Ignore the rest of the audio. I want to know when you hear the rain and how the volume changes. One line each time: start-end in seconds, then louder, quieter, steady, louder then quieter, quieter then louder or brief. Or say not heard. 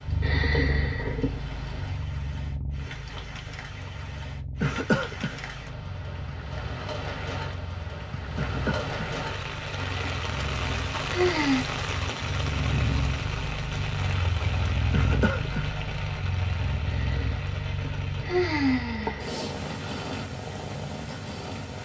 0.0-21.8 louder then quieter.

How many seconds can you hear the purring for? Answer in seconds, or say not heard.
22 s.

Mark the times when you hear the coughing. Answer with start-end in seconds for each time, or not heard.
4.6-5.3, 8.3-8.9, 14.9-15.7.